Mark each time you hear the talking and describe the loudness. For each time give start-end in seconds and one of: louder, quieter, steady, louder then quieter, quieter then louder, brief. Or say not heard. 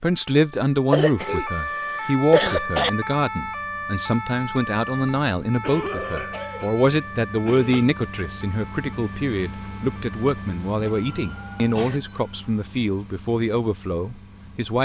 0.0-14.7 steady.